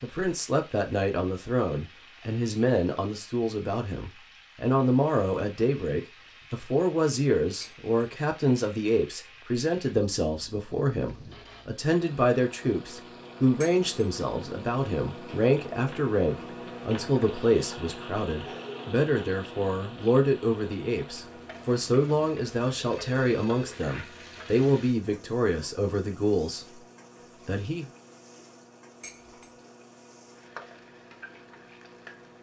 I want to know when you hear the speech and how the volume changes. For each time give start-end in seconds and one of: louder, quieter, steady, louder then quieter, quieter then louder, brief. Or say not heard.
0.0-26.8 steady
27.4-27.9 brief.